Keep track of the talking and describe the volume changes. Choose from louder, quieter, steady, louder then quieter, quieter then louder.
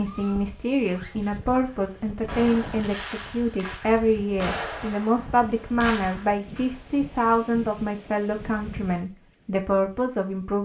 steady.